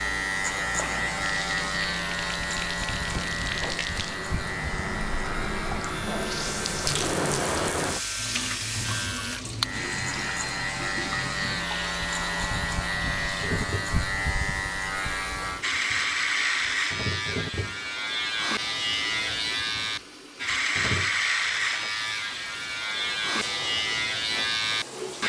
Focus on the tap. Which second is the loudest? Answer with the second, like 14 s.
7 s.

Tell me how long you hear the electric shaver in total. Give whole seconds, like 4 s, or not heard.
25 s.